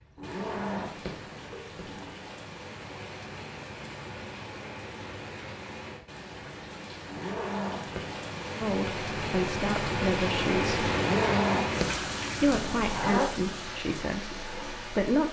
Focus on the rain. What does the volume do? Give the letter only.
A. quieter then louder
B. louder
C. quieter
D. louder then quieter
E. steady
D.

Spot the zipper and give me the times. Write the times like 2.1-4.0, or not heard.
0.1-2.1, 7.0-8.2, 10.9-13.3.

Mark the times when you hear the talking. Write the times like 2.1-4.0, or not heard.
8.6-10.9, 12.4-15.2.